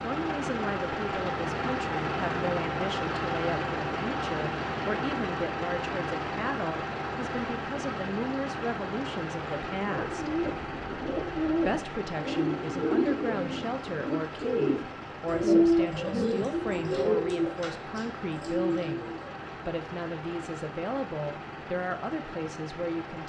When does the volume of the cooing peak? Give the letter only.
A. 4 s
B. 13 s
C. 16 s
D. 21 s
C.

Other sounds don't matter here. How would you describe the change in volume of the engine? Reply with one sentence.
The loudness of the engine goes down.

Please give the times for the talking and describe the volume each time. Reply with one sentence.
The talking can be heard from 0.0 to 10.3 s, at a steady volume; and from 11.6 to 23.2 s, at a steady volume.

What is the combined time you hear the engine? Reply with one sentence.
You can hear the engine for 23 seconds altogether.